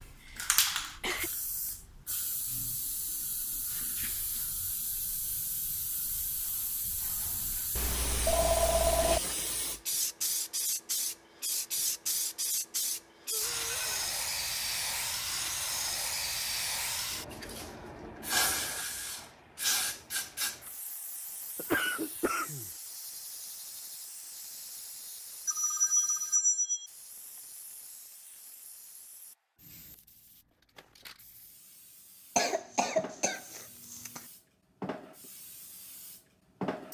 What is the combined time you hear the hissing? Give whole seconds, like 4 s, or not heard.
37 s.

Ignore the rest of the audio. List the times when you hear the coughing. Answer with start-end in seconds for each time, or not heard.
0.2-1.3, 21.6-22.7, 32.4-34.2.